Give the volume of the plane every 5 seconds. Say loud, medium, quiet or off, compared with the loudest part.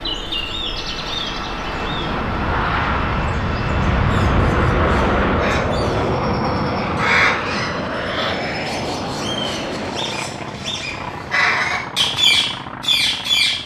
loud, loud, medium.